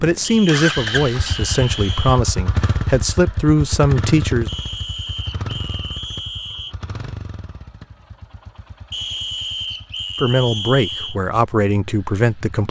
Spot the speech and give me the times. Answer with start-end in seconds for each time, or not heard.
0.0-4.5, 10.2-12.6.